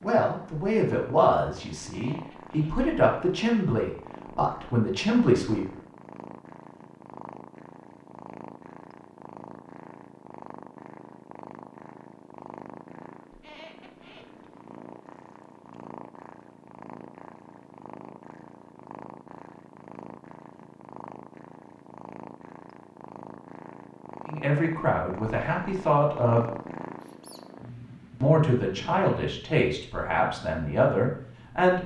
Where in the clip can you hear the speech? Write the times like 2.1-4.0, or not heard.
0.0-5.7, 24.2-26.5, 28.2-31.8.